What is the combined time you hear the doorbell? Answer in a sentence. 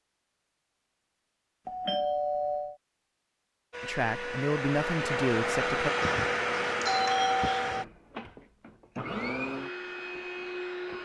You can hear the doorbell for 3 seconds altogether.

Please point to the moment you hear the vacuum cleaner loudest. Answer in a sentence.
The volume of the vacuum cleaner peaks at 6 seconds.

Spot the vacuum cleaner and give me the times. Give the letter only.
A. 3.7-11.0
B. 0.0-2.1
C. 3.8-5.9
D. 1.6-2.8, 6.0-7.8
A.